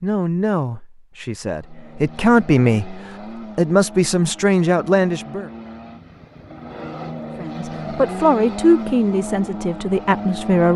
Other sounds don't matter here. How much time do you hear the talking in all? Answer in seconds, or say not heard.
9 s.